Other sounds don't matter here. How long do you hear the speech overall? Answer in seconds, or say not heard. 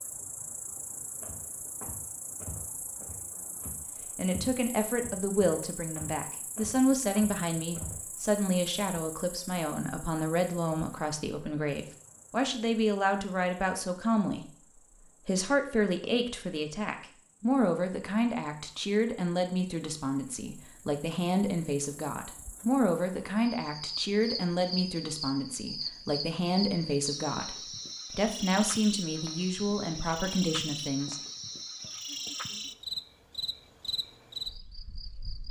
27 s.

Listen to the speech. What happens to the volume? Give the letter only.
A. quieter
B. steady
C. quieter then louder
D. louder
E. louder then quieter
B.